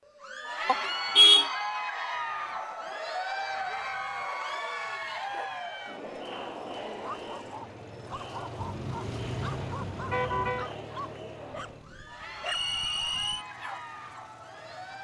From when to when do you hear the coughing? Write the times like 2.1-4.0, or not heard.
not heard.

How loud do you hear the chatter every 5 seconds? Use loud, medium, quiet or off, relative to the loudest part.
loud, medium, medium.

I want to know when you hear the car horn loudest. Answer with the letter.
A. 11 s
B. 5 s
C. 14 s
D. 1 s
D.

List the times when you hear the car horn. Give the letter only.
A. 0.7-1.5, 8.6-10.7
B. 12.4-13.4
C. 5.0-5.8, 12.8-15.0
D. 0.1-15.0
A.